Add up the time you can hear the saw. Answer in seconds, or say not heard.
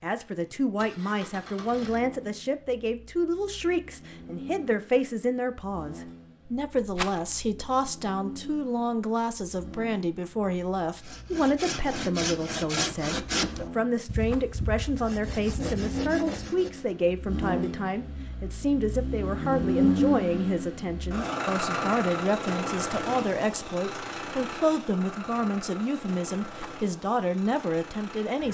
6 s.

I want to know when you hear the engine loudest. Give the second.
20 s.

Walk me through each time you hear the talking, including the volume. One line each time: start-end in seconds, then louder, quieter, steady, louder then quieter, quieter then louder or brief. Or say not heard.
0.0-28.4 steady.